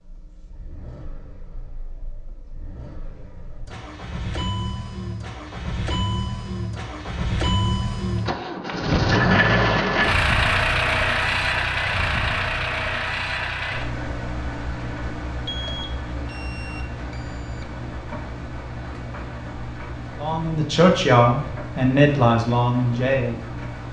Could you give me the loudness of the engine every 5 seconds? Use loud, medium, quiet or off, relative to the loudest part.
quiet, loud, loud, medium, medium.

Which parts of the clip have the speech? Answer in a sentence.
You can hear the speech from 20.2 to 23.4 s.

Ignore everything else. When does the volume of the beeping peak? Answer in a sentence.
The loudest moment of the beeping is at 16 seconds.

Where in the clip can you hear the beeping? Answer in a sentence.
The beeping can be heard from 15.4 to 17.6 s.